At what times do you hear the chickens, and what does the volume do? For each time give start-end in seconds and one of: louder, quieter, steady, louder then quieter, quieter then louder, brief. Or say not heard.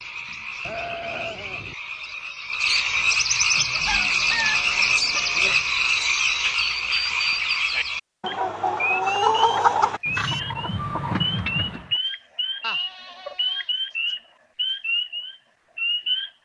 3.5-11.9 louder then quieter.